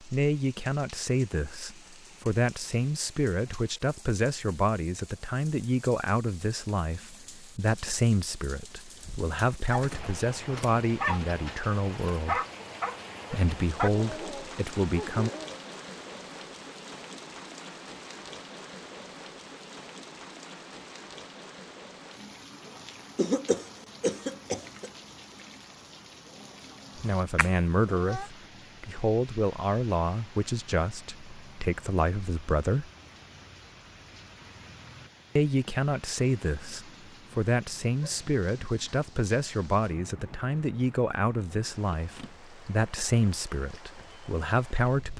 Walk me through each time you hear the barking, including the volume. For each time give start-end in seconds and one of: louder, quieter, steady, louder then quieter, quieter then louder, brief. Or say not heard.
9.1-15.6 louder then quieter.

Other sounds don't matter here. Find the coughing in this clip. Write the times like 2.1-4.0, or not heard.
23.1-24.9.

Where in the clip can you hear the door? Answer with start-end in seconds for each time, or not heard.
not heard.